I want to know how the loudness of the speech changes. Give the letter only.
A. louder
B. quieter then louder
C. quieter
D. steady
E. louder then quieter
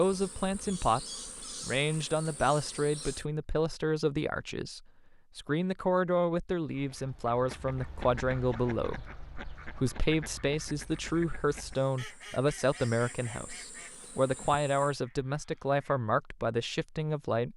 D.